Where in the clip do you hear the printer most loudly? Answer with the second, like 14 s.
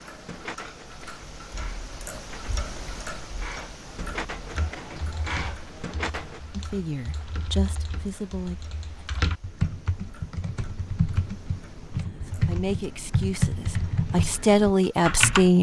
6 s.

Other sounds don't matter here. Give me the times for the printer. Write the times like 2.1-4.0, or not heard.
0.0-6.4.